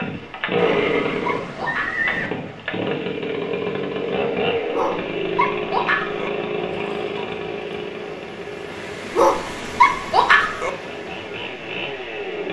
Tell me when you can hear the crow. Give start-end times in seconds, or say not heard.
not heard.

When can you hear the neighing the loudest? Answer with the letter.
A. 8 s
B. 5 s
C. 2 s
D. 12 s
C.